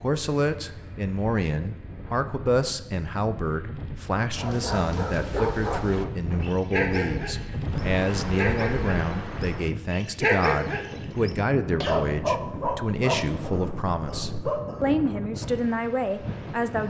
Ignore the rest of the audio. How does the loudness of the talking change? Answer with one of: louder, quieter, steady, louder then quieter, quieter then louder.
steady.